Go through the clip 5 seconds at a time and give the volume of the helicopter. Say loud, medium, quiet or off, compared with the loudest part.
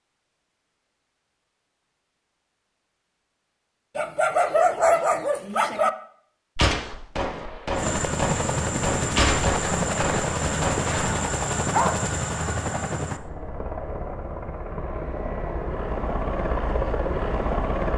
off, loud, loud, loud.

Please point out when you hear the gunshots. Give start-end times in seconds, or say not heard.
6.5-10.9.